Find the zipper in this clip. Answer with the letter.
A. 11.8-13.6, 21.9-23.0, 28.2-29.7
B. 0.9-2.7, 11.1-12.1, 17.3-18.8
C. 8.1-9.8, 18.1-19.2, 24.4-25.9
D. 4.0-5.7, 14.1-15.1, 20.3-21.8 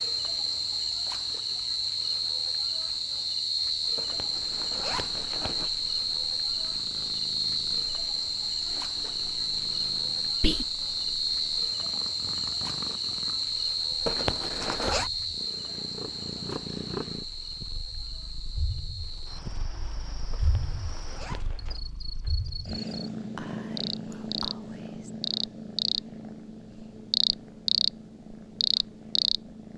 D.